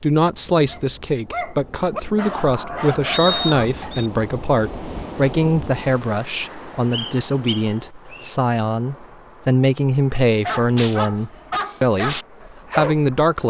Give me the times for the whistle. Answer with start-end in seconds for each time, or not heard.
3.1-4.1, 6.9-8.3.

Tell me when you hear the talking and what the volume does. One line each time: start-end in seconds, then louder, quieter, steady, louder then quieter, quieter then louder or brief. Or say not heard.
0.0-13.4 steady.